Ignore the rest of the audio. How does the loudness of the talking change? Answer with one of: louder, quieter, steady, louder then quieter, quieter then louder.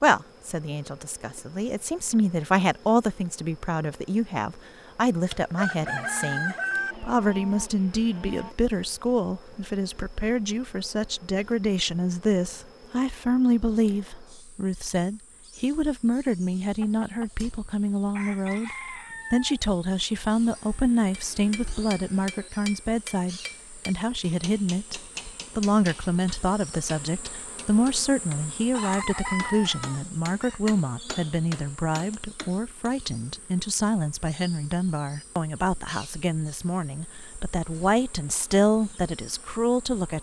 steady.